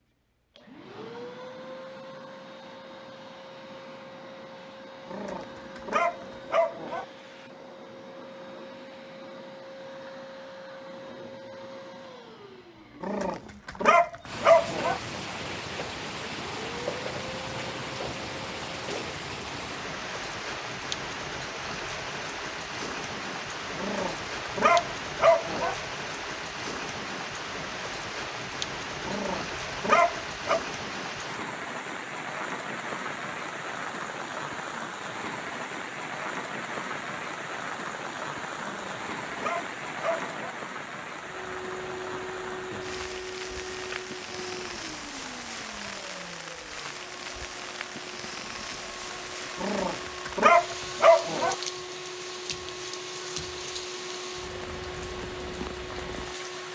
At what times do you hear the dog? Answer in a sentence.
You can hear the dog from 5.1 to 7.0 s, from 13.0 to 15.0 s, from 23.8 to 25.8 s, from 29.1 to 30.6 s, from 38.6 to 40.5 s and from 49.6 to 51.5 s.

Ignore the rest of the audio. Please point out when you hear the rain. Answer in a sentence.
The rain can be heard from 14.2 to 56.7 s.